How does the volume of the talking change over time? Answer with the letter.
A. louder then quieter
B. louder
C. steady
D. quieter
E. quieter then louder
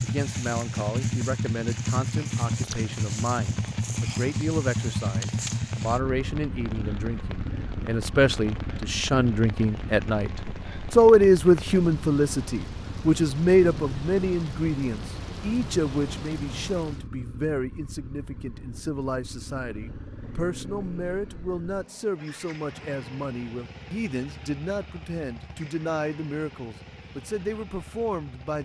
A.